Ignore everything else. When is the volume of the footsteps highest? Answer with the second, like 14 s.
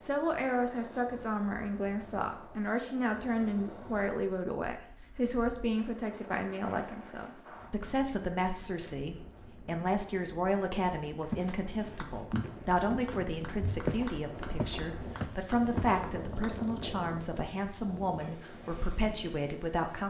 14 s.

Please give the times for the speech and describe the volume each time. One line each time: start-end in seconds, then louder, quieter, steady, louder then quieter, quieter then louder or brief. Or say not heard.
0.0-20.0 steady.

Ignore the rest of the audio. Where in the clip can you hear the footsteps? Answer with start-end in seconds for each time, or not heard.
11.3-15.9.